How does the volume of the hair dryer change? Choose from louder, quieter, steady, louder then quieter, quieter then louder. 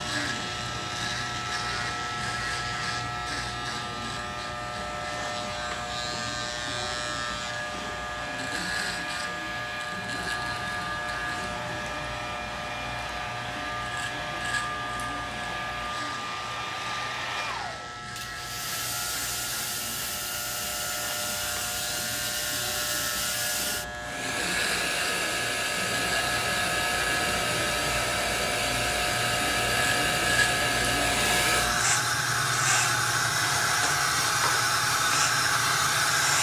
louder.